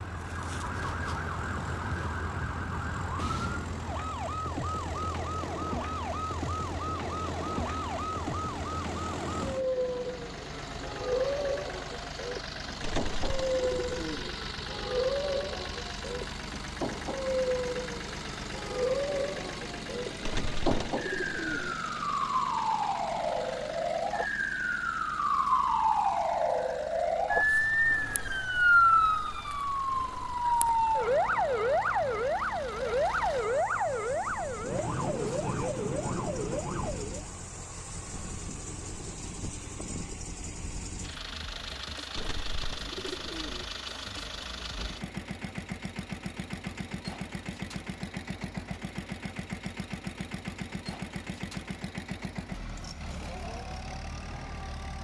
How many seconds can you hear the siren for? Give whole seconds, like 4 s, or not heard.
37 s.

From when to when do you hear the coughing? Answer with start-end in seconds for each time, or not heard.
not heard.